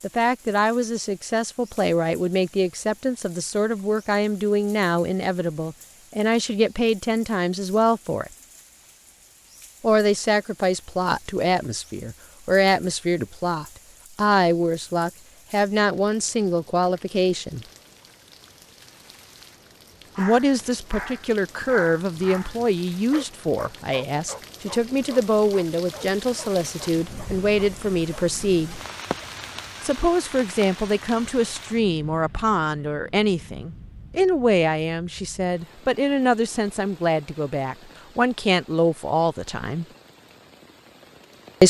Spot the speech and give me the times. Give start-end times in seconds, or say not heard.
0.0-8.3, 9.8-17.6, 20.1-28.8, 29.8-39.9.